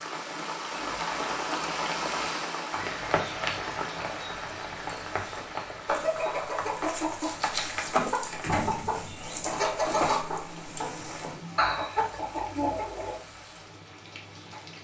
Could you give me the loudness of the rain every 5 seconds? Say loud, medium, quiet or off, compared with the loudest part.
loud, medium, quiet.